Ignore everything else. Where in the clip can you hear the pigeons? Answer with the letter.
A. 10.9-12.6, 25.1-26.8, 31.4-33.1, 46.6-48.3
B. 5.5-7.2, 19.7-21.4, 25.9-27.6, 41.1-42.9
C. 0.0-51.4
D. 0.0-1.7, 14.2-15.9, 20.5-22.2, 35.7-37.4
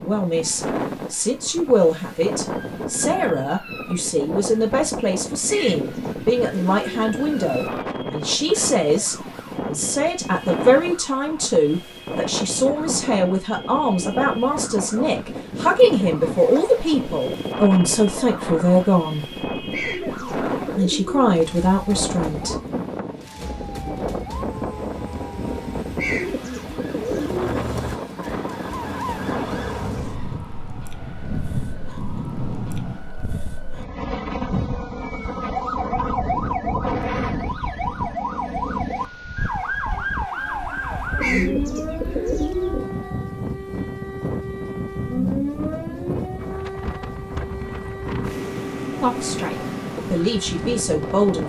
B.